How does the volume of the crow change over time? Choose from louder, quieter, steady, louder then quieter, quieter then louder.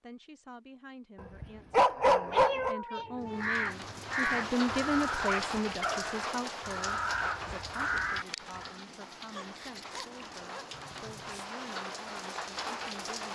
quieter then louder.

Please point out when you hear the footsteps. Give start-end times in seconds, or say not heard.
not heard.